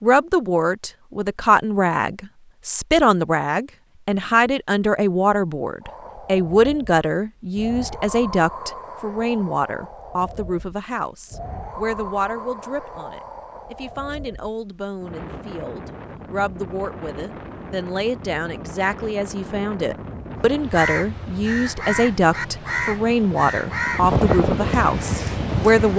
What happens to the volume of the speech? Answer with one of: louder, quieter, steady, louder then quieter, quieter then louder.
quieter then louder.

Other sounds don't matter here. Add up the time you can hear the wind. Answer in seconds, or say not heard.
20 s.